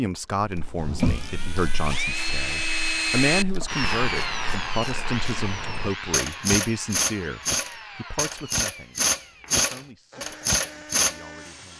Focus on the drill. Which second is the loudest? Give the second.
3 s.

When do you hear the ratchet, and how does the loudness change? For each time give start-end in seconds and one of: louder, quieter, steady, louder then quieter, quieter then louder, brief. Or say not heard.
0.3-11.2 louder.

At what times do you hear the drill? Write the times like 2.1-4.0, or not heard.
0.1-11.7.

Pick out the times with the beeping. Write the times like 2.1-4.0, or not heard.
not heard.